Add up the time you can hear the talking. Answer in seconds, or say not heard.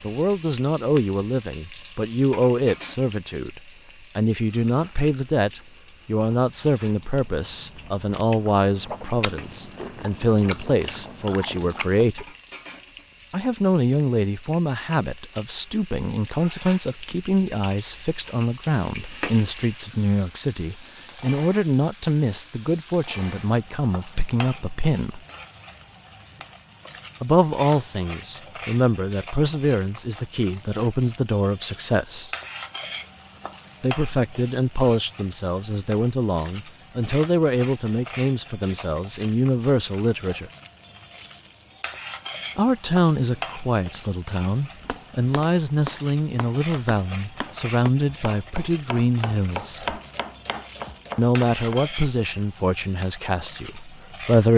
47 s.